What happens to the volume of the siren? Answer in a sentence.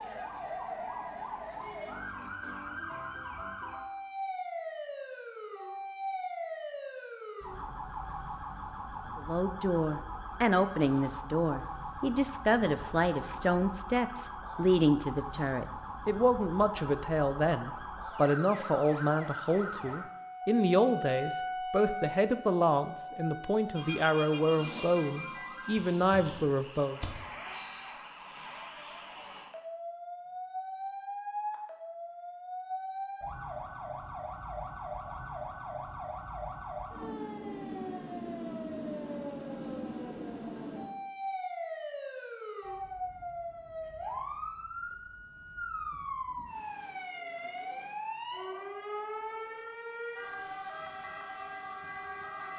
The loudness of the siren stays about the same.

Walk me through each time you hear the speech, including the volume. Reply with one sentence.
The speech can be heard from 9.2 to 27.0 s, at a steady volume.